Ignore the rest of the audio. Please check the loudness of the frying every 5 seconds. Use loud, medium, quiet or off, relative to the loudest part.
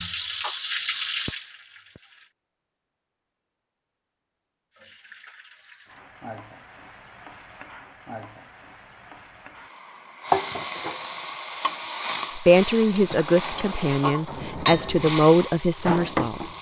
loud, quiet, loud, loud.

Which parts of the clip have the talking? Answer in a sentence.
You can hear the talking from 12.3 to 16.4 s.